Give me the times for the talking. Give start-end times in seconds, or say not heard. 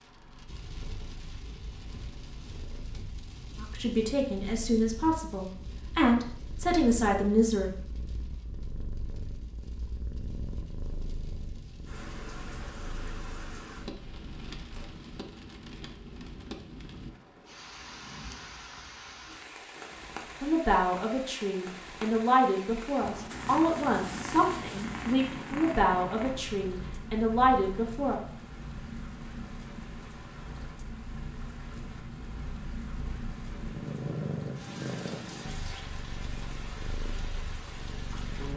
3.5-7.7, 20.4-28.2.